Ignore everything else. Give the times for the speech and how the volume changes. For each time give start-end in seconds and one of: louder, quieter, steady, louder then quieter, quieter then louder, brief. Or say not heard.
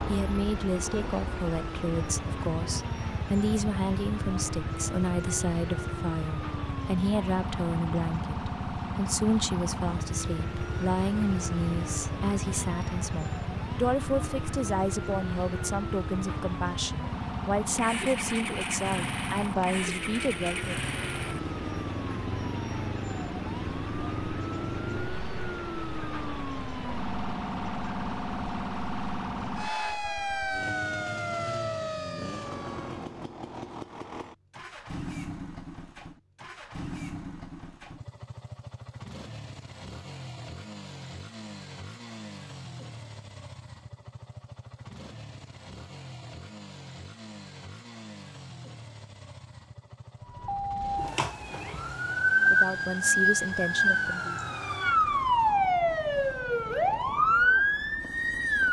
0.1-20.9 steady
52.5-54.4 brief.